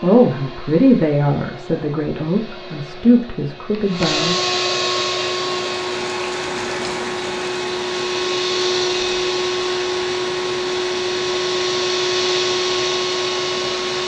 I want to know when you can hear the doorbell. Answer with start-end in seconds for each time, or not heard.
not heard.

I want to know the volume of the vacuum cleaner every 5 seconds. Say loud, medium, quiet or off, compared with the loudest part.
medium, loud, loud.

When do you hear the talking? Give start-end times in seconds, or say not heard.
0.0-4.3.